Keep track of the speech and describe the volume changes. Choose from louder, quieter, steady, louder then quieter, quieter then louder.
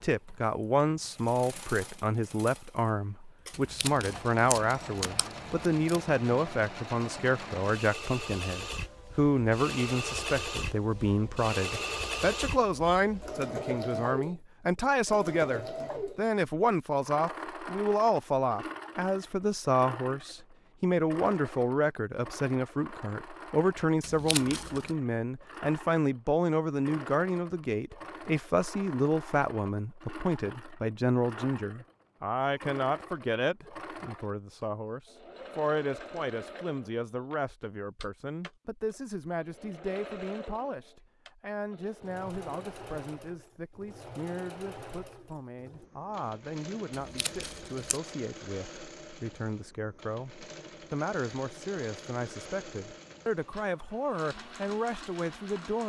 quieter.